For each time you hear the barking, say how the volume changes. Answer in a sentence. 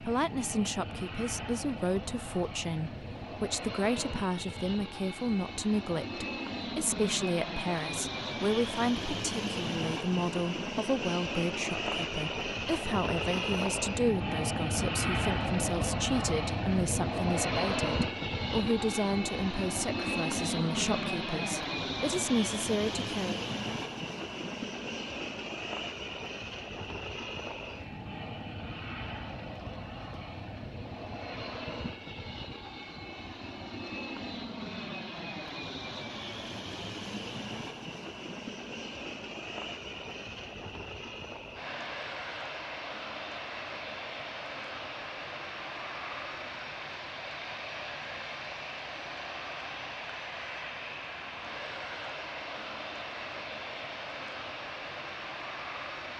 You can't hear the barking here.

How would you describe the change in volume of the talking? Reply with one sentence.
The volume of the talking stays about the same.